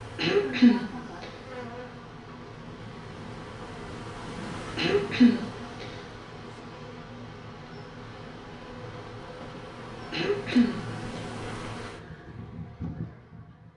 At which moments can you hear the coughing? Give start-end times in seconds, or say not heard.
0.1-1.2, 4.8-5.8, 10.1-11.2.